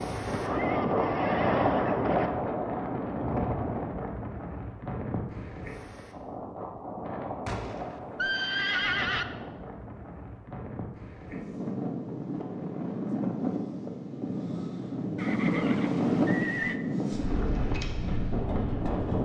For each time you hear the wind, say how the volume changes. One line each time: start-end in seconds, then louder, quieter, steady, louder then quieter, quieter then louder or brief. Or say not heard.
0.0-19.1 quieter then louder.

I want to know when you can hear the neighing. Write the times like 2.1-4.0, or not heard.
0.2-2.3, 7.5-9.2, 15.2-16.8.